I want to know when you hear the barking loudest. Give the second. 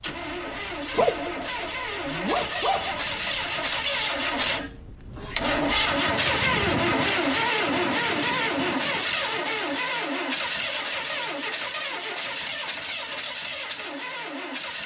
1 s.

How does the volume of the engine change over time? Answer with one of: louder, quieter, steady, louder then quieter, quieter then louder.
louder then quieter.